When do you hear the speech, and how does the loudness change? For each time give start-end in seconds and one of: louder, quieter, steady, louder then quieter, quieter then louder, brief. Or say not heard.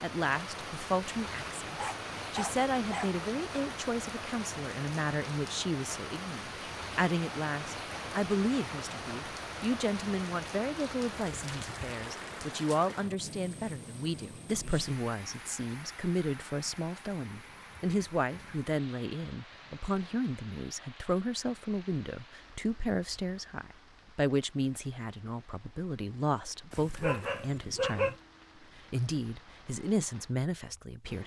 0.0-28.1 steady
28.8-31.2 brief.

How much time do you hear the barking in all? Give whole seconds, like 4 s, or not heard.
3 s.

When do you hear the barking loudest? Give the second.
28 s.